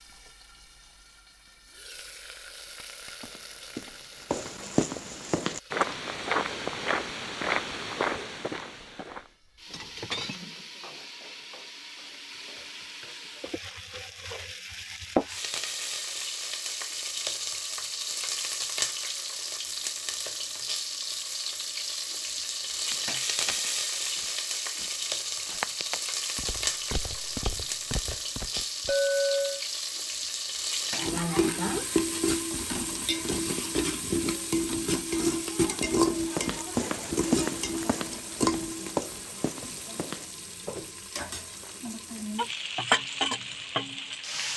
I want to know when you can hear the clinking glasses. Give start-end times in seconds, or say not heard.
9.7-10.4, 28.9-29.6.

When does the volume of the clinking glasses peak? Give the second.
29 s.